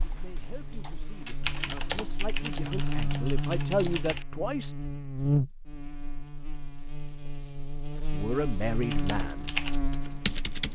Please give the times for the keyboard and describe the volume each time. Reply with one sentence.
You can hear the keyboard from 0.0 to 4.2 s, getting louder then quieter; and briefly from 8.8 to 10.6 s.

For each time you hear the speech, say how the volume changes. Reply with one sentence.
The speech can be heard from 0.1 to 4.8 s, getting louder; and briefly from 8.1 to 9.5 s.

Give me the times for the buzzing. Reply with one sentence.
You can hear the buzzing from 0.0 to 10.6 s.